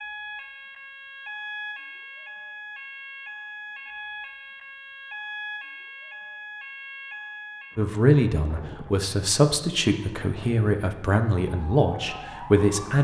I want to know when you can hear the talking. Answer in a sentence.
The talking can be heard from 7.8 to 12.9 s.